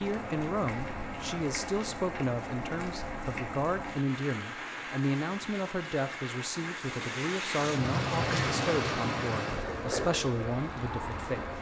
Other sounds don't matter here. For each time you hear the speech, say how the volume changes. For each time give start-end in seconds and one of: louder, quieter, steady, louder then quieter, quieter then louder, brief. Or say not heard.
0.0-11.4 steady.